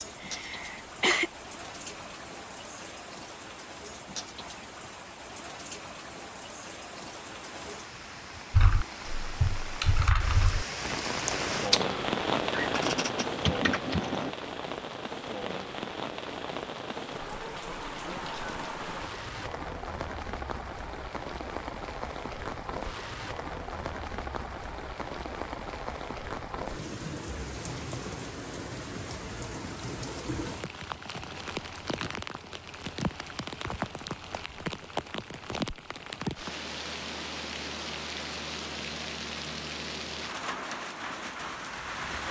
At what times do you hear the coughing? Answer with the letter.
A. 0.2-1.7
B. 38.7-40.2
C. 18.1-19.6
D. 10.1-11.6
A.